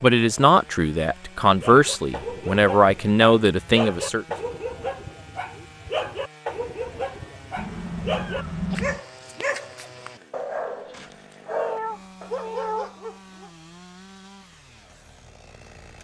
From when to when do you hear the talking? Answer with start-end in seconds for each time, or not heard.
0.0-4.2.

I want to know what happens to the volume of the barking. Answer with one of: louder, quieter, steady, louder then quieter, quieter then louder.
steady.